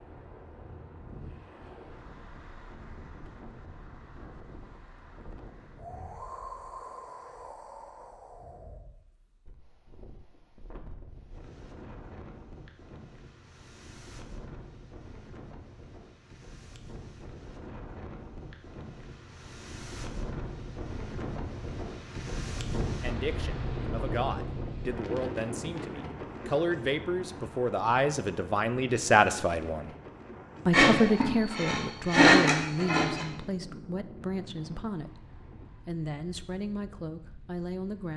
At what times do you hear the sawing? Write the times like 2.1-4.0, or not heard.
30.7-33.2.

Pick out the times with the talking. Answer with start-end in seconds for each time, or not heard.
23.0-29.9, 30.6-38.1.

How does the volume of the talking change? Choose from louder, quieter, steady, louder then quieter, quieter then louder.
louder then quieter.